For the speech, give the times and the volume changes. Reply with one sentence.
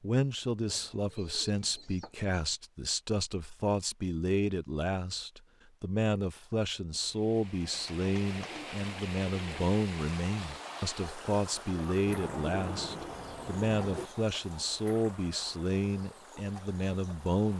The speech can be heard from 0.0 to 17.5 s, at a steady volume.